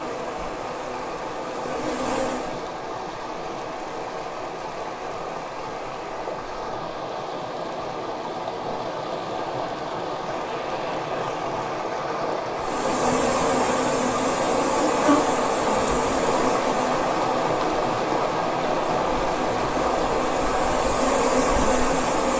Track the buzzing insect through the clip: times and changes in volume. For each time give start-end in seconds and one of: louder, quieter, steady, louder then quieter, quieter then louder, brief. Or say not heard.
0.0-2.6 brief
12.6-22.3 quieter then louder.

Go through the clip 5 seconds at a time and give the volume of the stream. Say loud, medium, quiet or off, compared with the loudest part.
medium, medium, loud, loud, loud.